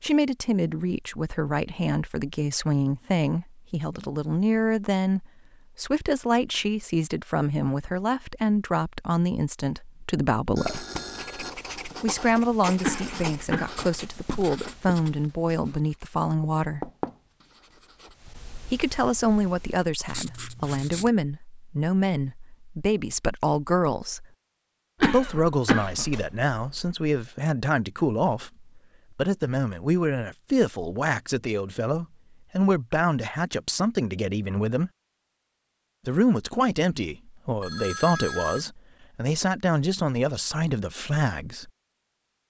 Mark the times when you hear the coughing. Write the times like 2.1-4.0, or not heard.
12.8-13.8, 25.0-26.9.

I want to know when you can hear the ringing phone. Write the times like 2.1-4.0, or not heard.
10.6-11.5, 37.6-38.6.